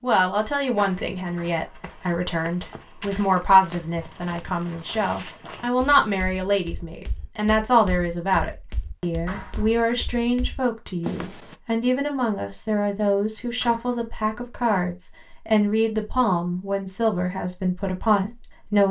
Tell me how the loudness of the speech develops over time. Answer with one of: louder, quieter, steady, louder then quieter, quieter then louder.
steady.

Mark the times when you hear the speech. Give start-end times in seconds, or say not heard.
0.0-18.8.